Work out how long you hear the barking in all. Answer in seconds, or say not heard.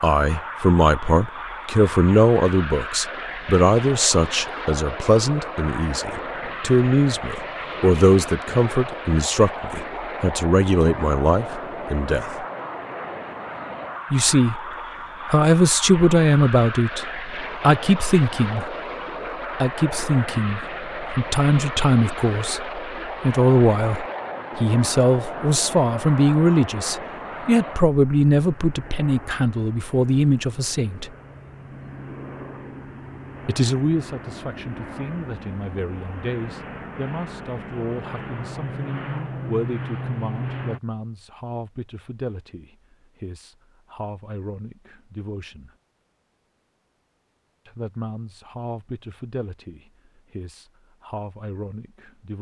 not heard.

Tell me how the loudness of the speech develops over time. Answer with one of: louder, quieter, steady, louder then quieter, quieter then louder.
quieter.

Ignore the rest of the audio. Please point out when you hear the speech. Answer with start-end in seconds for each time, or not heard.
0.0-12.4, 14.1-18.8, 19.6-31.1, 33.5-45.7, 47.6-52.3.